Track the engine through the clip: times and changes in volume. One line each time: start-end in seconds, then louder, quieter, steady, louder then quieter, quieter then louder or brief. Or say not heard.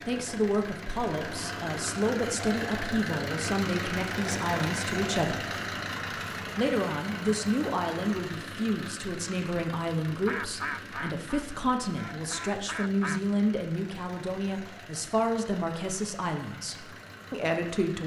0.0-18.0 quieter.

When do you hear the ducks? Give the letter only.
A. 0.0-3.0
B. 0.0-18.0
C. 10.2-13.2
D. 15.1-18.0
C.